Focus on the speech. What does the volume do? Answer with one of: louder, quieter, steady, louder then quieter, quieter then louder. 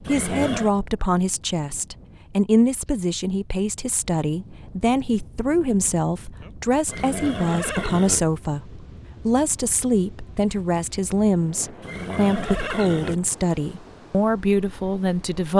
steady.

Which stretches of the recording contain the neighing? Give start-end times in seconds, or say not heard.
0.1-0.7, 6.8-8.2, 11.8-13.2.